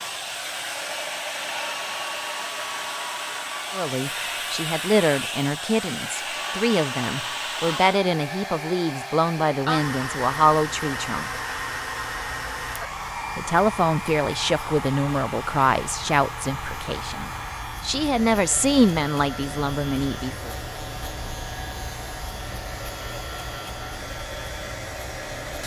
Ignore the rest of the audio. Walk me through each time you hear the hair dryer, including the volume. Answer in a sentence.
You can hear the hair dryer from 0.0 to 25.6 s, getting quieter.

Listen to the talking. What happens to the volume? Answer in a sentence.
The volume of the talking stays about the same.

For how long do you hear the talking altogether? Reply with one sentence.
You can hear the talking for 15 seconds altogether.